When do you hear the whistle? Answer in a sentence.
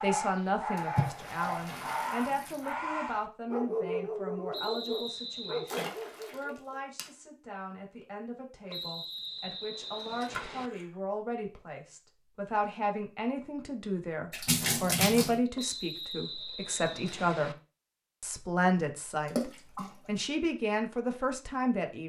You can hear the whistle from 4.5 to 5.8 s, from 8.7 to 10.7 s and from 15.6 to 17.6 s.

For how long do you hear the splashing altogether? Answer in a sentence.
The splashing can be heard for 6 seconds in total.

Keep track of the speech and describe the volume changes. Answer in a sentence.
The volume of the speech goes down, then up.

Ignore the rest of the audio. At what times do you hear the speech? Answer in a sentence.
You can hear the speech from 0.0 to 17.6 s and from 18.2 to 22.0 s.